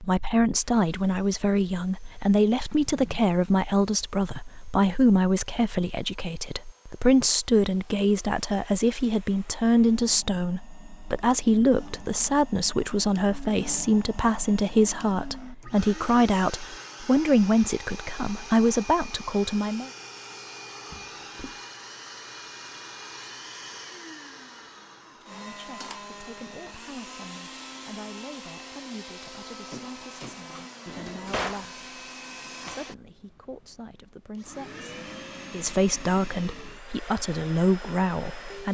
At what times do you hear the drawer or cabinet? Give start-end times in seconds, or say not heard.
2.7-3.2, 20.9-21.6, 30.9-31.6.